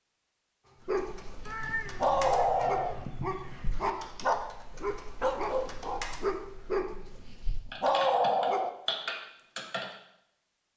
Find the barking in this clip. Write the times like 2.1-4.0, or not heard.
0.8-1.4, 1.9-7.2, 7.8-8.7.